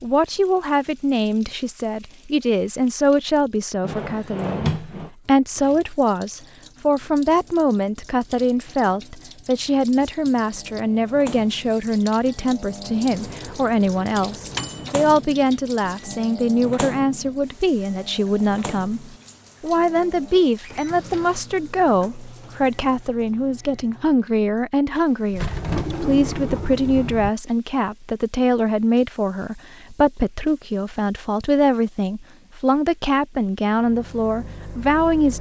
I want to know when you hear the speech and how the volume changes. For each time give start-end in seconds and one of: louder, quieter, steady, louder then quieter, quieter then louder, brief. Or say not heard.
0.0-35.3 steady.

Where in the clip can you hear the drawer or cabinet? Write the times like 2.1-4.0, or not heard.
3.8-5.1, 20.6-21.4, 25.3-27.3.